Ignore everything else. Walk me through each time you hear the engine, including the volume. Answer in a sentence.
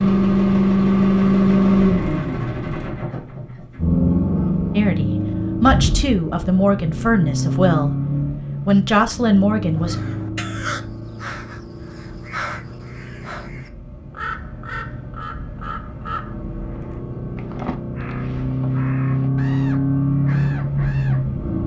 You can hear the engine from 0.0 to 21.6 s, getting quieter then louder.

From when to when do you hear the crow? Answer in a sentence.
You can hear the crow from 9.8 to 21.2 s.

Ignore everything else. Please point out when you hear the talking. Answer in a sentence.
You can hear the talking from 4.8 to 8.0 s and from 8.7 to 9.9 s.